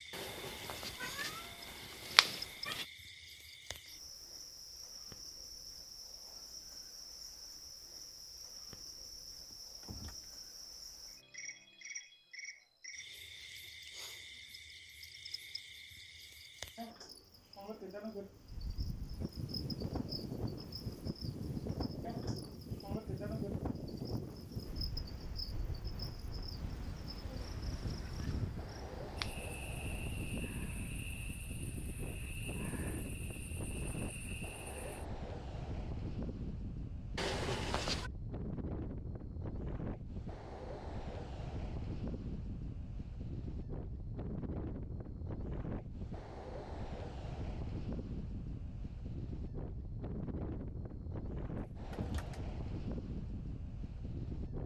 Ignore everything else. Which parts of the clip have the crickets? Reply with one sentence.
You can hear the crickets from 0.0 to 35.0 s.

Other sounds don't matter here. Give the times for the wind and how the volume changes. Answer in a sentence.
The wind can be heard from 18.4 to 54.6 s, at a steady volume.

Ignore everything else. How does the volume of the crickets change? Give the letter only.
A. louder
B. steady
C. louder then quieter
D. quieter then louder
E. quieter
B.